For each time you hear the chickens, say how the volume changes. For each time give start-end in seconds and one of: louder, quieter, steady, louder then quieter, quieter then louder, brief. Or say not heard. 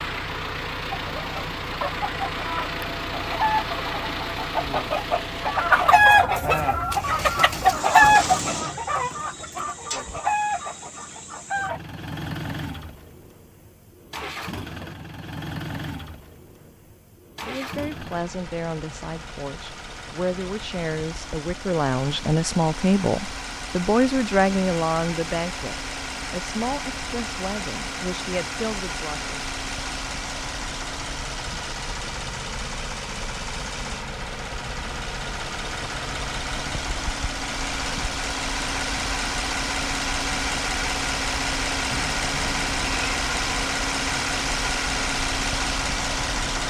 0.9-11.8 louder then quieter.